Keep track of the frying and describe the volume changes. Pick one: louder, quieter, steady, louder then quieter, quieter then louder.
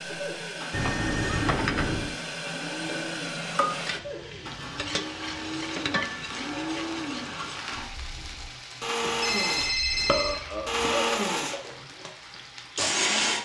quieter.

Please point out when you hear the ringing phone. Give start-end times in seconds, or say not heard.
0.7-2.1, 9.0-10.8.